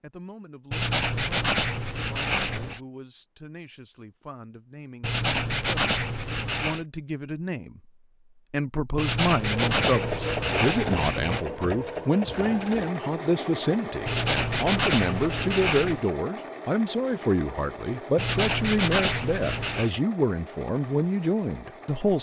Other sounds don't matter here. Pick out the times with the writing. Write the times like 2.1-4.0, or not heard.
0.7-2.8, 5.0-6.8, 8.9-11.4, 14.1-16.1, 18.1-19.9.